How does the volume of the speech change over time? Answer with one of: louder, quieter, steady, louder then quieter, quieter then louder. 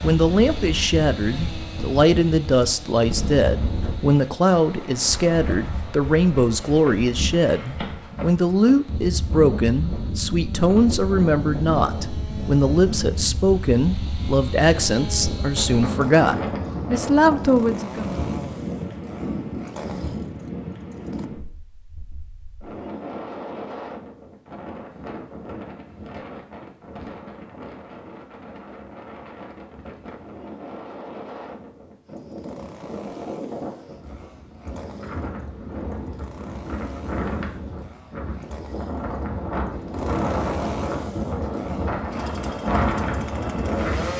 steady.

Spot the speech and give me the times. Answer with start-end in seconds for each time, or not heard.
0.0-18.1.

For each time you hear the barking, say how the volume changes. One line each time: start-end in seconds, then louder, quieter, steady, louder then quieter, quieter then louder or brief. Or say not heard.
not heard.